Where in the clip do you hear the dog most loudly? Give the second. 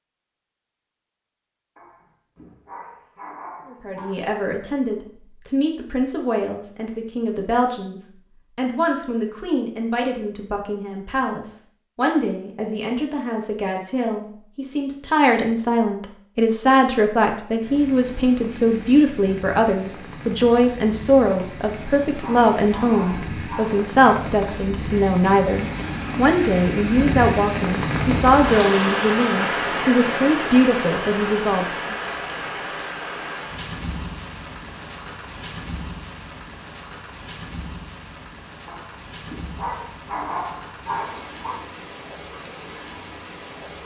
40 s.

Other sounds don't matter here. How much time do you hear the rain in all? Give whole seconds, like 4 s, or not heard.
26 s.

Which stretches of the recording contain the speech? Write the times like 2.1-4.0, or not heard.
3.6-31.9.